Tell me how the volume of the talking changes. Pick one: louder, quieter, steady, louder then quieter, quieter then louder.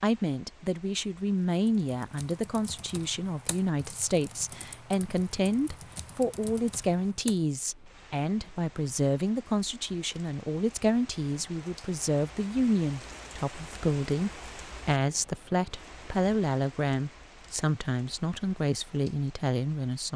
steady.